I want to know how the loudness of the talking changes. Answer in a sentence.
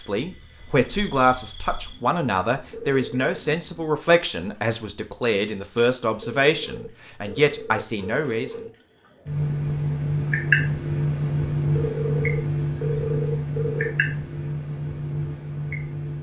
The loudness of the talking stays about the same.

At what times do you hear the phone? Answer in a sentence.
The phone can be heard from 2.7 to 3.3 s, from 6.2 to 8.7 s and from 11.7 to 13.9 s.